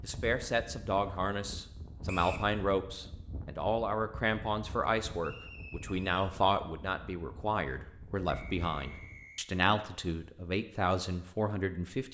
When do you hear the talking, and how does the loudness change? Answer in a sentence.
You can hear the talking from 0.0 to 12.0 s, at a steady volume.